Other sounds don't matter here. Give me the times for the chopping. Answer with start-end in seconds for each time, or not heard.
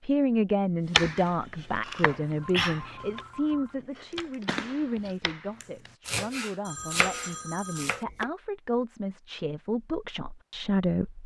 0.9-8.2.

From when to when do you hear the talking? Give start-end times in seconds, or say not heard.
0.1-11.2.